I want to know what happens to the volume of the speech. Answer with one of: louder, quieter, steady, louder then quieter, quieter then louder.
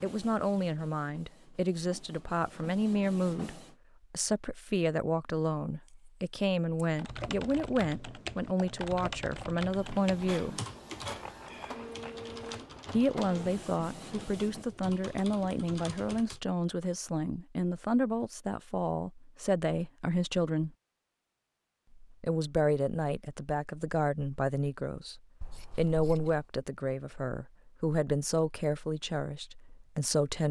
steady.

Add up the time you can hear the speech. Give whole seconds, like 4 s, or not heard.
27 s.